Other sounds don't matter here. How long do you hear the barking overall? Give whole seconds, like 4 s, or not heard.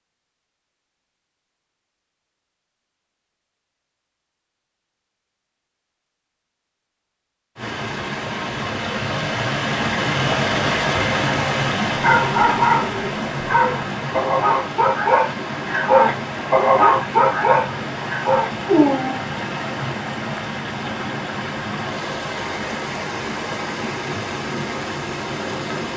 7 s.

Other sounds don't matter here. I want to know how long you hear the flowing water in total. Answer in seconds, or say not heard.
18 s.